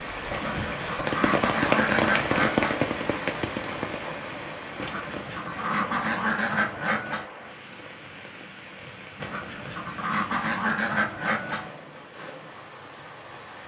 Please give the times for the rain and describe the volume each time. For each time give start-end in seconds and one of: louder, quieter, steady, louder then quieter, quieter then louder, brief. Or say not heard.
0.0-13.6 quieter.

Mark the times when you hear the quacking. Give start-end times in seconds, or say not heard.
0.3-2.8, 4.8-7.2, 9.2-11.7.